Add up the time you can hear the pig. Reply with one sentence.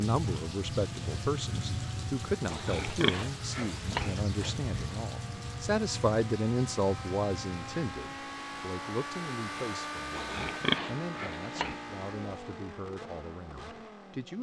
You can hear the pig for 4 seconds altogether.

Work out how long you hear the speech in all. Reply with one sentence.
The speech can be heard for 14 seconds in total.